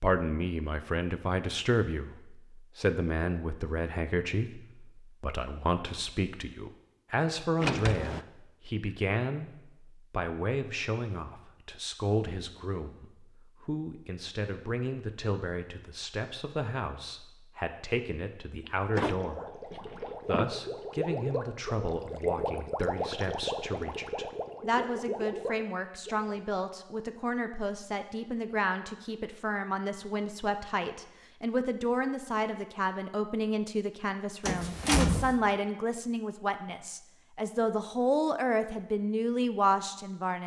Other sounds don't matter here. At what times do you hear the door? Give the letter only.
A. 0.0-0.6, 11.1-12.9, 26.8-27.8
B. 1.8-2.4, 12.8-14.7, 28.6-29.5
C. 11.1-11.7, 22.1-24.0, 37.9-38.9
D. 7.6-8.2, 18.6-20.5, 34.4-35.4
D.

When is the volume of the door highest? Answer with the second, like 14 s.
35 s.